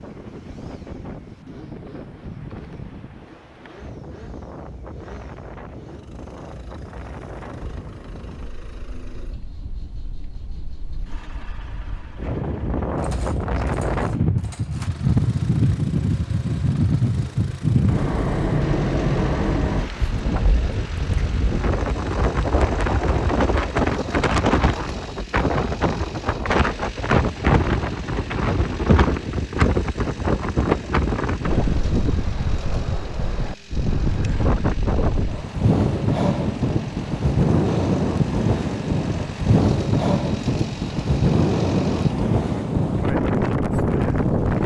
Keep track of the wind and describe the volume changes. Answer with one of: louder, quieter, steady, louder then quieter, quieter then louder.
louder.